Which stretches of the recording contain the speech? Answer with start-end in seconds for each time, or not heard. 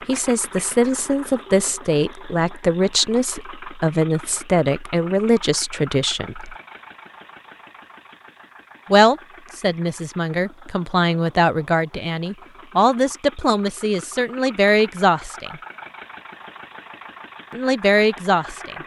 0.1-6.5, 8.9-15.6, 17.5-18.8.